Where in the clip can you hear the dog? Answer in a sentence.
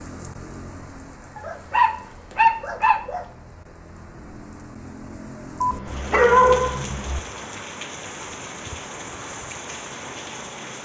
The dog can be heard from 1.4 to 3.2 s and from 5.6 to 7.2 s.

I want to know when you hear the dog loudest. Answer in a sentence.
The loudest moment of the dog is at 6 seconds.